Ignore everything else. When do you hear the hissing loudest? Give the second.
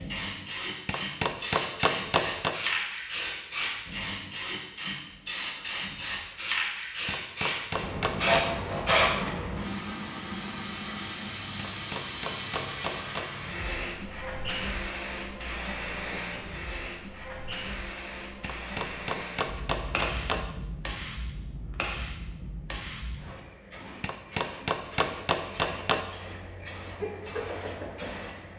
9 s.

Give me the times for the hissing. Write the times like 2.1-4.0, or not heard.
0.0-28.5.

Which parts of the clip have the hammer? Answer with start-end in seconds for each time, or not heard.
0.8-2.6, 7.0-8.5, 11.6-13.3, 18.4-20.4, 24.0-26.1.